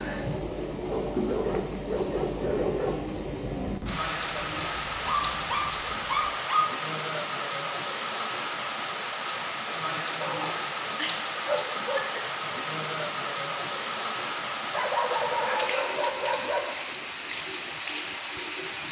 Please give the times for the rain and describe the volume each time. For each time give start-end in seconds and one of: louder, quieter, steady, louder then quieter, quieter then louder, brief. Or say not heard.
0.0-18.8 steady.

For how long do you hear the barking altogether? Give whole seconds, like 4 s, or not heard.
8 s.